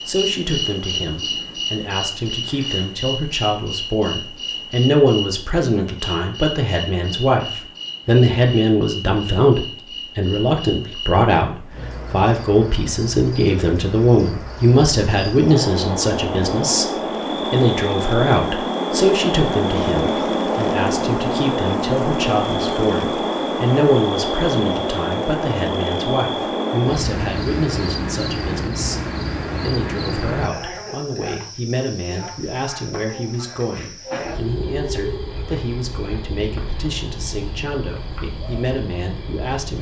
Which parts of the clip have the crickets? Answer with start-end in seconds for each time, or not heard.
0.0-39.7.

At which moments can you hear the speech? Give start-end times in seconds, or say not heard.
0.1-39.7.